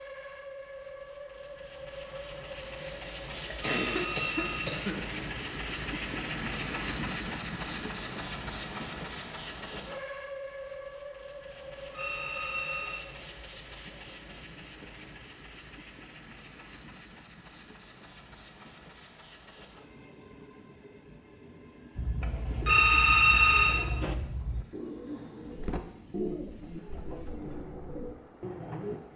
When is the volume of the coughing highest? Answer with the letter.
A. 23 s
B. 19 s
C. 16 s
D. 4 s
D.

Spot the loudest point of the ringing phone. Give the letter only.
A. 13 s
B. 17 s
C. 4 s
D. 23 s
D.